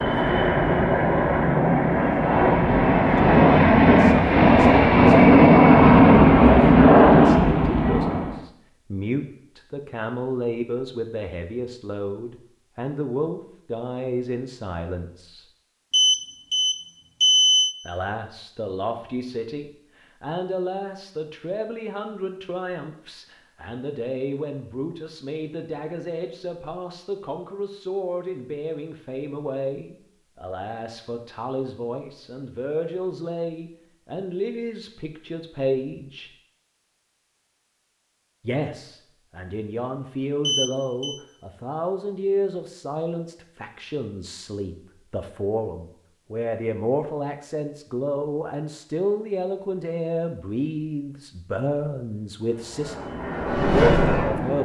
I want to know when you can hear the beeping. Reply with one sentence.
You can hear the beeping from 15.9 to 17.8 s and from 40.4 to 41.2 s.